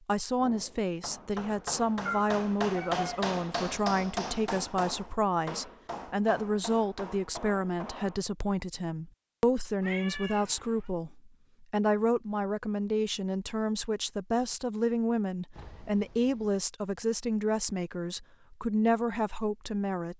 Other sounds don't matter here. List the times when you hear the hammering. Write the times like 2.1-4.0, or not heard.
0.3-8.2.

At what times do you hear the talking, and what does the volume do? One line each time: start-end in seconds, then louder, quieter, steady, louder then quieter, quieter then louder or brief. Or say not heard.
0.1-20.1 steady.